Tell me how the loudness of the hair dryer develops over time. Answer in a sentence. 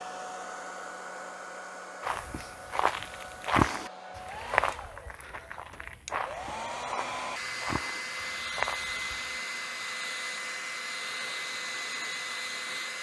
The volume of the hair dryer goes up.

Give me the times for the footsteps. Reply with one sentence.
The footsteps can be heard from 2.0 to 9.4 s.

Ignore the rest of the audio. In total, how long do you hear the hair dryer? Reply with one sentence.
You can hear the hair dryer for 13 seconds altogether.